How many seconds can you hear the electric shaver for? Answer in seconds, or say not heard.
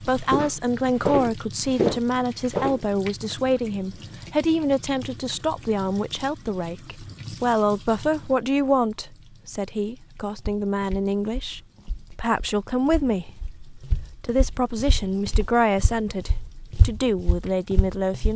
not heard.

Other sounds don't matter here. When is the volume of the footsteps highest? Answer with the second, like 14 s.
2 s.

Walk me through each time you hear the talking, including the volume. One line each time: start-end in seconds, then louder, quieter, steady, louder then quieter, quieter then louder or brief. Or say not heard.
0.0-18.3 steady.